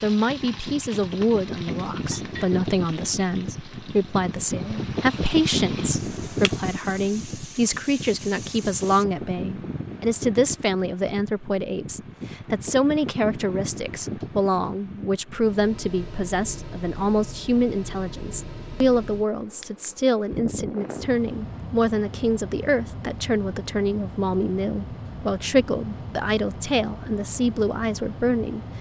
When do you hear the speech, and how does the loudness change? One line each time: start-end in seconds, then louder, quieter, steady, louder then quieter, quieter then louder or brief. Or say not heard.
0.0-28.6 steady.